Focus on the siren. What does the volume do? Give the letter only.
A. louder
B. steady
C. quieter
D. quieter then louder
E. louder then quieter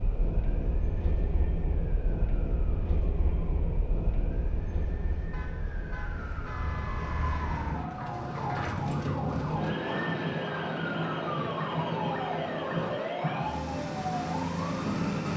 A.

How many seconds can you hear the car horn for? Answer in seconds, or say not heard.
2 s.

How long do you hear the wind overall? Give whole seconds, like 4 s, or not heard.
15 s.